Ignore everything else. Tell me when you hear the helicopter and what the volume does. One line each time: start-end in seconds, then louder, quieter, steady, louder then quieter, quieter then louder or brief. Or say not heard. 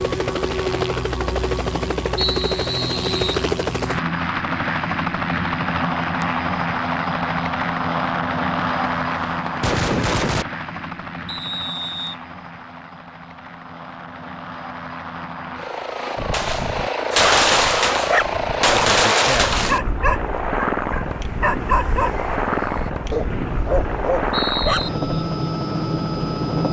0.0-26.6 quieter then louder.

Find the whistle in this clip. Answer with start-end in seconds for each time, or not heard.
2.1-3.5, 11.2-12.2, 23.3-24.9.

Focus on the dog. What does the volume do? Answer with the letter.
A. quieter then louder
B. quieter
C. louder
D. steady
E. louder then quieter
D.